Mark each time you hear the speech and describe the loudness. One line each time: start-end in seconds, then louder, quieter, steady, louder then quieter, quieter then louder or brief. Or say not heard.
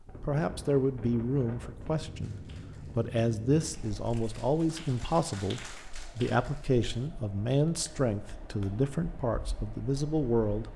0.2-10.7 steady.